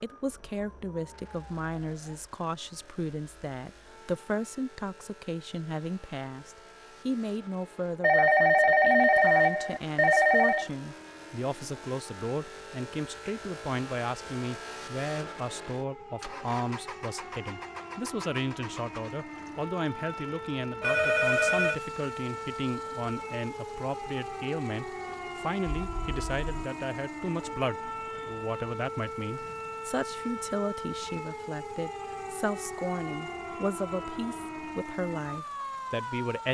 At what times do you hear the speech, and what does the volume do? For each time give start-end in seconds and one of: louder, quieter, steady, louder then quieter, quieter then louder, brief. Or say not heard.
0.0-36.5 steady.